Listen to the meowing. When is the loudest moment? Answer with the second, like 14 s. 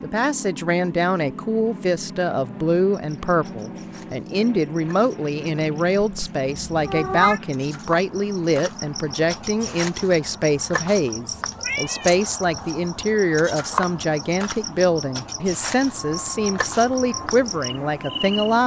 7 s.